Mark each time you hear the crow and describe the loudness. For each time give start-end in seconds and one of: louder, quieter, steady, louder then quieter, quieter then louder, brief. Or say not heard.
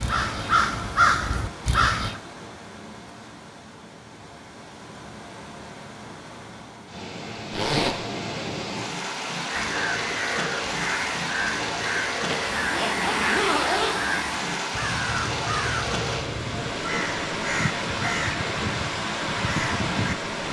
0.0-2.2 brief
9.4-20.1 steady.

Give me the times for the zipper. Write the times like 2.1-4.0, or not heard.
7.5-8.0, 12.2-14.0.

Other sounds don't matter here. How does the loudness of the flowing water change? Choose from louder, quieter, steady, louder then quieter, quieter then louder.
louder.